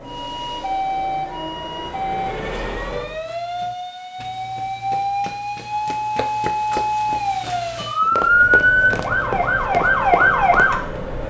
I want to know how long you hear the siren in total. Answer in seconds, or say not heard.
11 s.